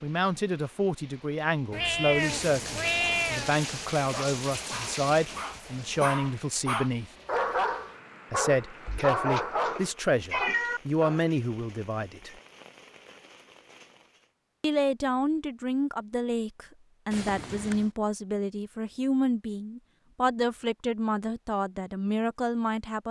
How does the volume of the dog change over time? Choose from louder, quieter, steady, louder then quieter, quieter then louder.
louder.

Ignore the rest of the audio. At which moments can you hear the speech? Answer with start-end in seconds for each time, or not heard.
0.0-7.1, 8.3-12.3, 14.6-23.0.